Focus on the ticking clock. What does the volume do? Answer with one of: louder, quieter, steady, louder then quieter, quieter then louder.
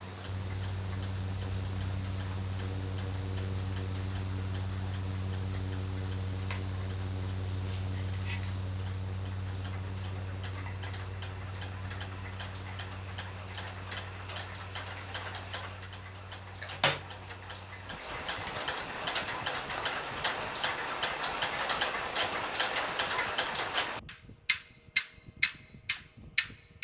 louder.